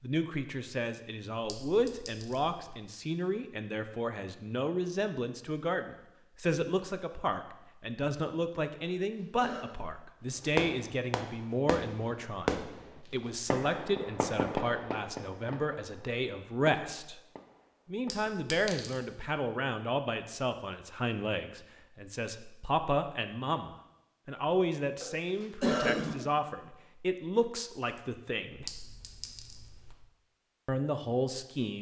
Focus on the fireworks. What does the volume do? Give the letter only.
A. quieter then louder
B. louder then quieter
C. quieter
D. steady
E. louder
B.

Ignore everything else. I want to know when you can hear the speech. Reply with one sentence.
You can hear the speech from 0.0 to 17.2 s, from 17.9 to 28.6 s and from 30.6 to 31.7 s.